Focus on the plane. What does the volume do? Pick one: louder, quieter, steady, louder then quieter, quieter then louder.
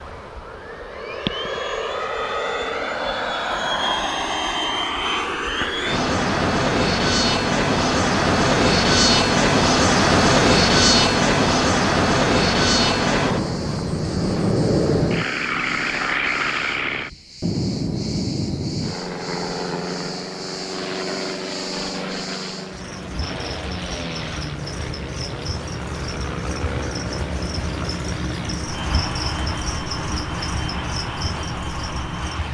louder then quieter.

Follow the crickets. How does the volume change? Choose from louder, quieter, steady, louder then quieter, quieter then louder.
louder.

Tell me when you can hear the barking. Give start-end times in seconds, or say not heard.
not heard.